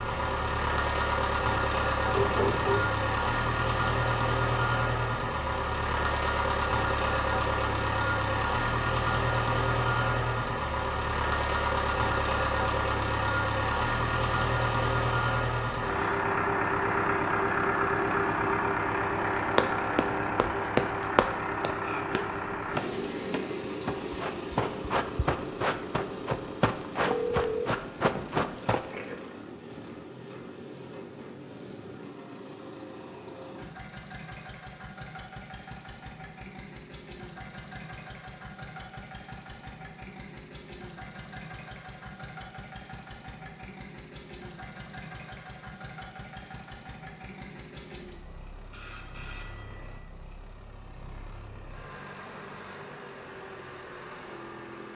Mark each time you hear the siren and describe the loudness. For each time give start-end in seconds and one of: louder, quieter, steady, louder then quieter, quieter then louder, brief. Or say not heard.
not heard.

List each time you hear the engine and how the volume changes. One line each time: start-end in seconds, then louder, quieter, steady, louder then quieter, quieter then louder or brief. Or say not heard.
0.0-54.9 quieter.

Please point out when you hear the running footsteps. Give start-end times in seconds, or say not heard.
19.6-28.9.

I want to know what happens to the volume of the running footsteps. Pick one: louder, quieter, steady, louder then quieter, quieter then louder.
quieter then louder.